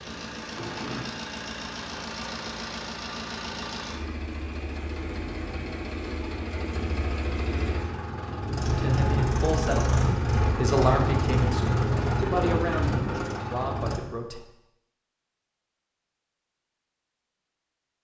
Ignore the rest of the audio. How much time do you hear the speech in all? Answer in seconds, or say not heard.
6 s.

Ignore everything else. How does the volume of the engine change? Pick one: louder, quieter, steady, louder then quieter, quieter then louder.
louder.